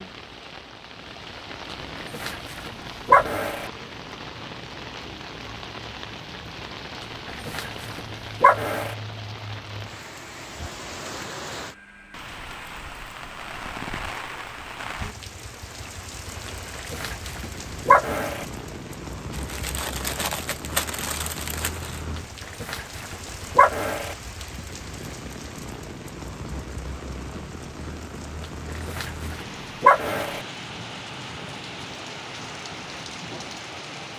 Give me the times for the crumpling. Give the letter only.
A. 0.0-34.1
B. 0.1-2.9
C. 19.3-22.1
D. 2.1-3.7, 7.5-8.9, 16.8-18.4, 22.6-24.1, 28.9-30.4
C.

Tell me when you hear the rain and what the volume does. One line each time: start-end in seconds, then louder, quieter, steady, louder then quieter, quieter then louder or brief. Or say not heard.
0.0-34.1 steady.